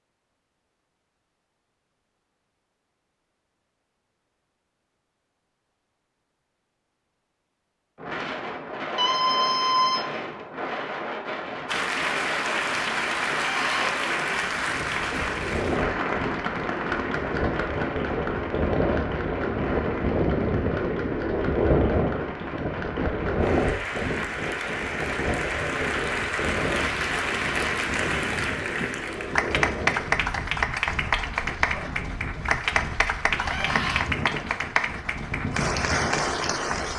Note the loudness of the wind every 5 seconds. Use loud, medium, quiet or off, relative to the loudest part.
off, medium, medium, loud, loud, medium, medium, medium.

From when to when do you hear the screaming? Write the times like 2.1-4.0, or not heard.
8.9-10.1, 13.4-13.9, 33.4-34.0.